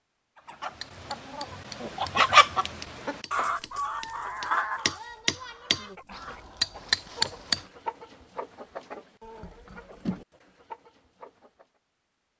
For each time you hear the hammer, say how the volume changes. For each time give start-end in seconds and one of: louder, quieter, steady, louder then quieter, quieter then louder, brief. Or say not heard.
0.7-7.7 louder.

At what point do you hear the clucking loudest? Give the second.
2 s.